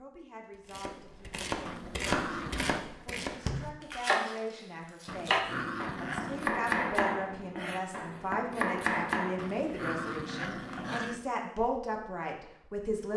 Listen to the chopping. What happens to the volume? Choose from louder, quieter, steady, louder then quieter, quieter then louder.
steady.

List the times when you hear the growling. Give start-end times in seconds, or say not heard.
1.6-2.9, 5.0-6.5, 9.3-11.2.